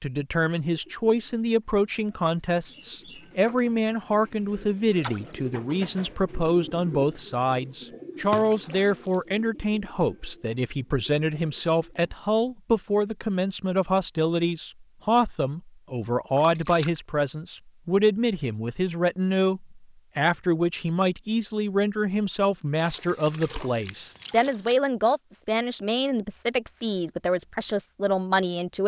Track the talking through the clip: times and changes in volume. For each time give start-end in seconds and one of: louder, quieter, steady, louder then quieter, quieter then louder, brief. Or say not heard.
0.0-28.8 steady.